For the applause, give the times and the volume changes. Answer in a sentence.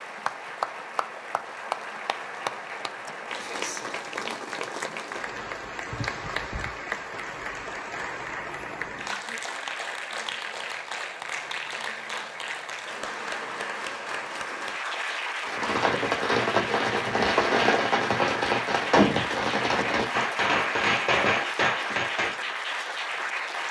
The applause can be heard from 0.0 to 23.6 s, at a steady volume.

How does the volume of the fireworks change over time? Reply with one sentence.
The loudness of the fireworks stays about the same.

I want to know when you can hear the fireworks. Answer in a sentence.
You can hear the fireworks from 15.4 to 22.4 s.